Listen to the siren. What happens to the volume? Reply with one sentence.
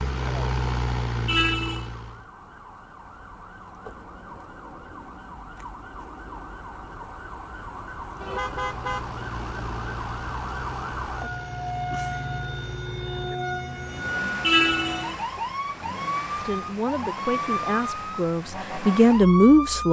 The volume of the siren goes up.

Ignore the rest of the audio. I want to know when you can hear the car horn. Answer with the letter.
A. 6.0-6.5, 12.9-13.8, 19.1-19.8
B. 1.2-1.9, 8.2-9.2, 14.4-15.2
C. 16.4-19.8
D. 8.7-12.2
B.